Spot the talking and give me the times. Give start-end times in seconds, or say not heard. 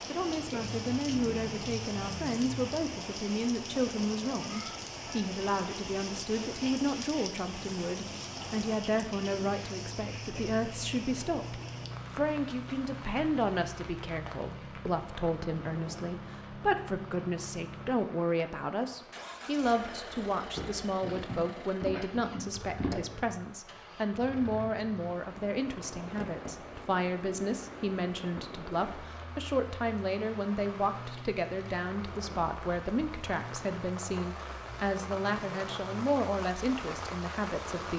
0.1-37.9.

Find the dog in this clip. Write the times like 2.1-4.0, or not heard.
20.6-23.1.